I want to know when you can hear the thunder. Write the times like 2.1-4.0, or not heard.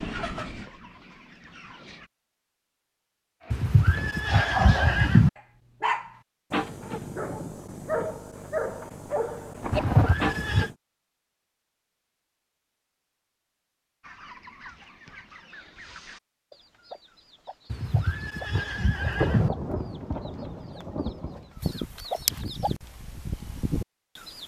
9.6-10.2, 18.5-21.5.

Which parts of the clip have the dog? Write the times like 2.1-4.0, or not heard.
3.5-10.8.